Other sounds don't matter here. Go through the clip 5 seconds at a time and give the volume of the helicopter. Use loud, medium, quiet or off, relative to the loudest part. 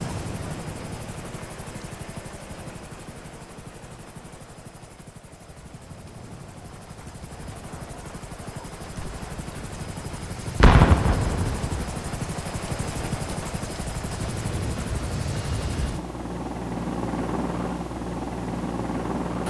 medium, medium, loud, loud.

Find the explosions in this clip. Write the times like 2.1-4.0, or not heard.
10.6-11.7.